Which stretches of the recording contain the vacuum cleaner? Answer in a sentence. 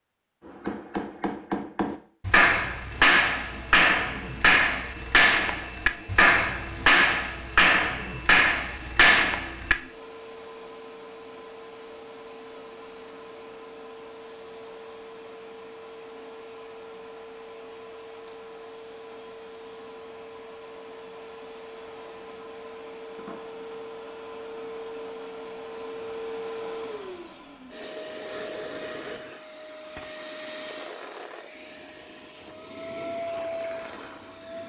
The vacuum cleaner can be heard from 2.9 to 34.6 s.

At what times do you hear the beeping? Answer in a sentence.
You can't hear the beeping here.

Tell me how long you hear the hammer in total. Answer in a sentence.
You can hear the hammer for 9 seconds altogether.